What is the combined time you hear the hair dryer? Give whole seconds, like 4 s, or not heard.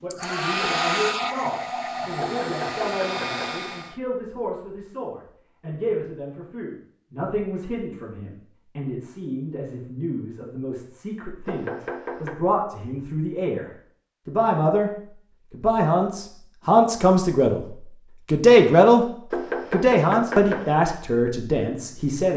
4 s.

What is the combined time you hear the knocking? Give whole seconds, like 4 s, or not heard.
4 s.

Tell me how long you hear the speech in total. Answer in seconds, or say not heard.
21 s.